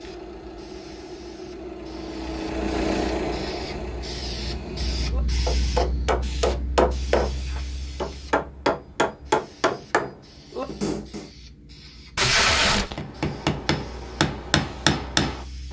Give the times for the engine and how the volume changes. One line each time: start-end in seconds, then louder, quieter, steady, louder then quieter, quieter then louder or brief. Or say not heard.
0.0-5.2 louder then quieter.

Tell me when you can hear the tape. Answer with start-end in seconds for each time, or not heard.
12.2-13.0.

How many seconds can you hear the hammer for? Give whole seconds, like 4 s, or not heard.
9 s.